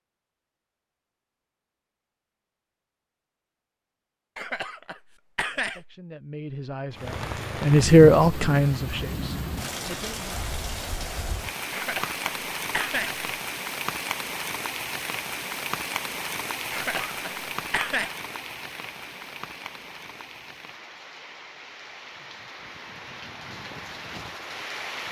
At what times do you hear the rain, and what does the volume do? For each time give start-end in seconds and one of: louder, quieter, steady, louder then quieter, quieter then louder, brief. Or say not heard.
6.9-25.0 quieter.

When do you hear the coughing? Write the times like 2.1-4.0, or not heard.
4.3-6.0, 11.7-13.2, 16.7-18.1.